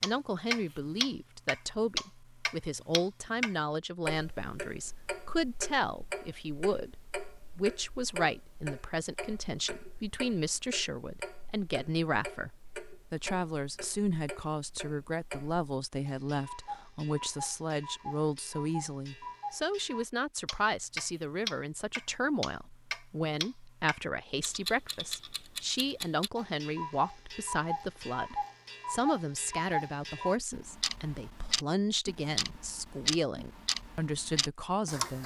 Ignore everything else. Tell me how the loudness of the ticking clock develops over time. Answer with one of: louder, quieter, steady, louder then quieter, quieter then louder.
quieter then louder.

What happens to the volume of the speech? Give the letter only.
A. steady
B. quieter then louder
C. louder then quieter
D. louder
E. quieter
A.